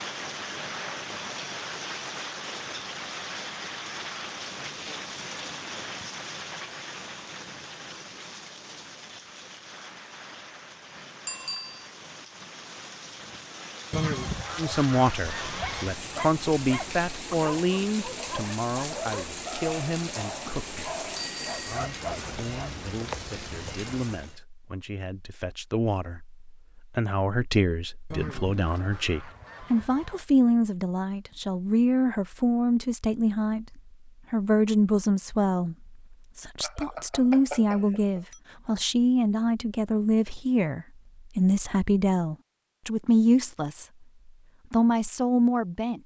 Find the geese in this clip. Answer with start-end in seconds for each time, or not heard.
13.9-15.9, 28.1-30.2.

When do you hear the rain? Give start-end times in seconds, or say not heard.
0.0-24.4.